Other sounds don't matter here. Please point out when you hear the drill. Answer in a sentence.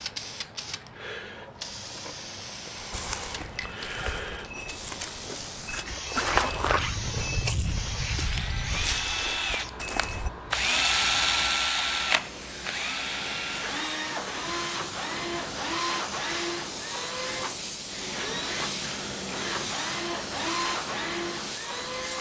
You can hear the drill from 7.9 to 22.1 s.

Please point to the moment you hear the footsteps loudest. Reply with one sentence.
The volume of the footsteps peaks at 6 seconds.